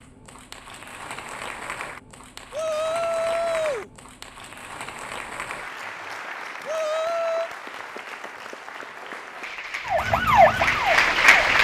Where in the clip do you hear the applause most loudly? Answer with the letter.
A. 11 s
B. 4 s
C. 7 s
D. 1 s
A.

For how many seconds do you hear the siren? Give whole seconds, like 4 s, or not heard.
2 s.